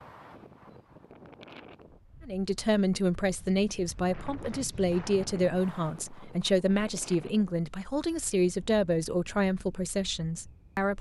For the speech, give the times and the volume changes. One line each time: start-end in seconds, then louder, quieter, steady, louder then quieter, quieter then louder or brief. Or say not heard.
2.2-10.9 steady.